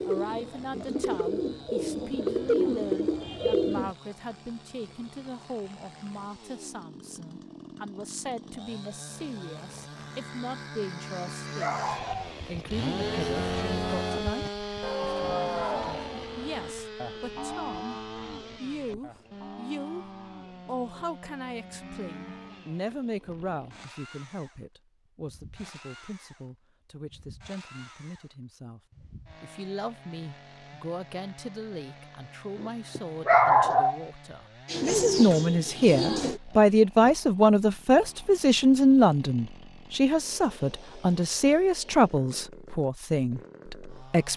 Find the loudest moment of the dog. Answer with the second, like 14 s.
33 s.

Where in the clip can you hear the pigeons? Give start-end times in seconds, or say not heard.
0.0-4.0, 34.6-36.4.